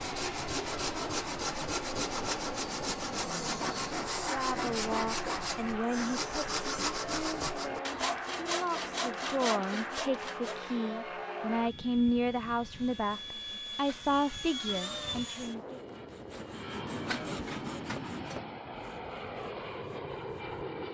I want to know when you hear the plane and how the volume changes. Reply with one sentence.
The plane can be heard from 0.0 to 20.8 s, at a steady volume.